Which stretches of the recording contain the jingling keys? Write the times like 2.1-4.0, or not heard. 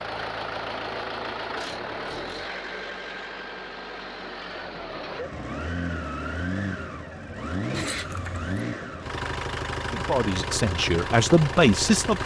7.7-8.6.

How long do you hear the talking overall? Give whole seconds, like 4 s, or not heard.
2 s.